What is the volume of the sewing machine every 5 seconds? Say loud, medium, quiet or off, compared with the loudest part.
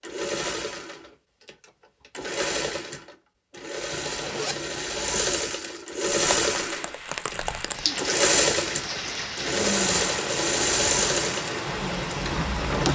medium, loud, loud.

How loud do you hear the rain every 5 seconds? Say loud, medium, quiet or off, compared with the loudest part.
off, loud, loud.